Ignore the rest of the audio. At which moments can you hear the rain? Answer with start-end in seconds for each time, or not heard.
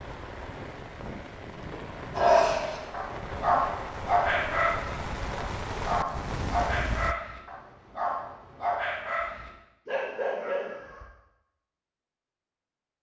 0.0-7.2.